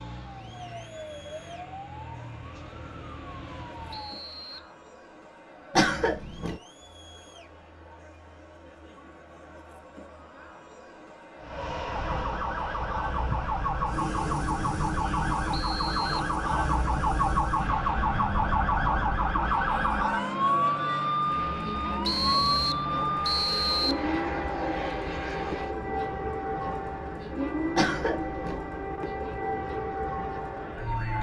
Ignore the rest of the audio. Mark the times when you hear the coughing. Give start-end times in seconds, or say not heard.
5.8-6.6, 27.8-28.6.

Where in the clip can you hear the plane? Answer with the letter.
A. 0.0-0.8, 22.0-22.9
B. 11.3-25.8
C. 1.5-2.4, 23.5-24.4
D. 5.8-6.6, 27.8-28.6
B.